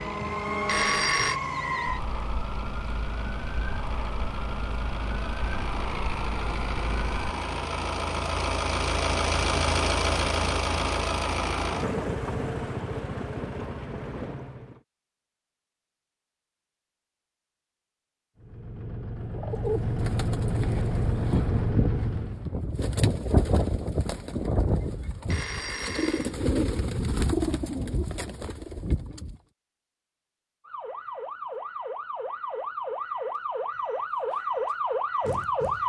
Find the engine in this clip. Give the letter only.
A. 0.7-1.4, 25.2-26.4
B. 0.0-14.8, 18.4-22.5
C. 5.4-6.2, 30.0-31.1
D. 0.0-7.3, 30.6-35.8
B.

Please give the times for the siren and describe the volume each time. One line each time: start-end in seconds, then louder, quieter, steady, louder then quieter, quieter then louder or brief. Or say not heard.
0.0-7.3 quieter
30.6-35.8 louder.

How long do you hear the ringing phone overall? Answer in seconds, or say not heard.
2 s.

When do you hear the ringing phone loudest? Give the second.
1 s.